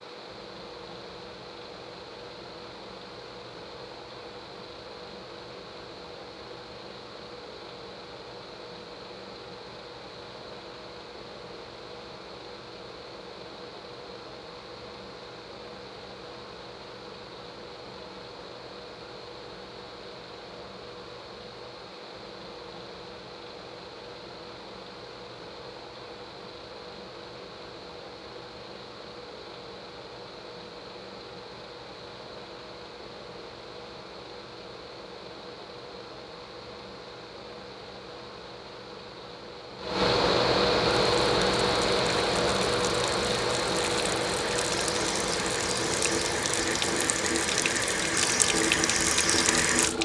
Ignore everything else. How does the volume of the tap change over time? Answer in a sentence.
The volume of the tap goes up.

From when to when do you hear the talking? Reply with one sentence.
The talking can't be heard in this clip.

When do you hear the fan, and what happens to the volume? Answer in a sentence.
The fan can be heard from 0.0 to 50.0 s, getting louder.